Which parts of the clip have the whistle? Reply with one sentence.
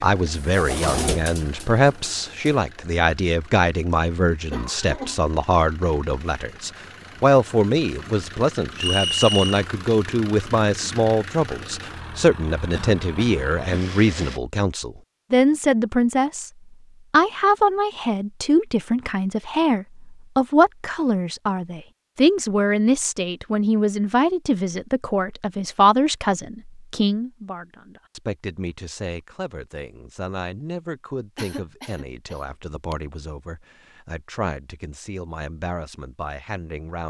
You can hear the whistle from 8.8 to 9.7 s.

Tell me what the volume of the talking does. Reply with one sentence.
The loudness of the talking goes down.